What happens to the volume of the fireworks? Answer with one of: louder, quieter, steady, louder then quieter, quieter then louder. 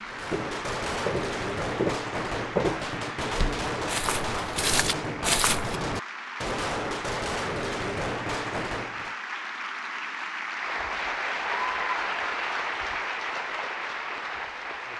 steady.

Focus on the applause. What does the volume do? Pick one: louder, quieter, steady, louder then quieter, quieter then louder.
louder.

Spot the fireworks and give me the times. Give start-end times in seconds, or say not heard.
0.0-9.2.